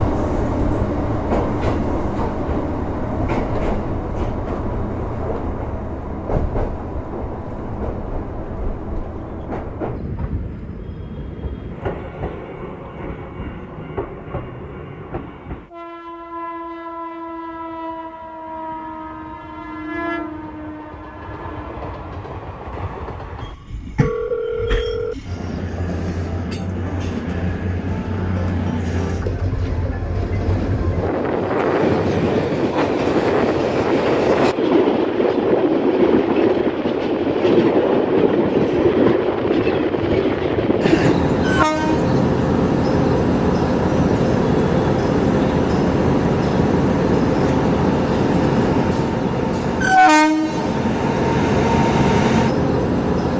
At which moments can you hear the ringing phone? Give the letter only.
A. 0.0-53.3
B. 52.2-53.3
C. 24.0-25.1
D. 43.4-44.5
C.